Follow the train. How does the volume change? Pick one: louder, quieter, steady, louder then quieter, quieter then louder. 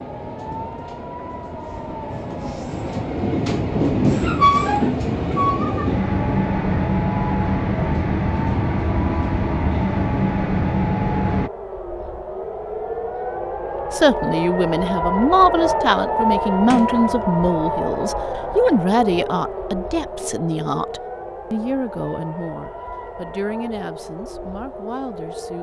louder.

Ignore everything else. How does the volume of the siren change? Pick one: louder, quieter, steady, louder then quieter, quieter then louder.
louder then quieter.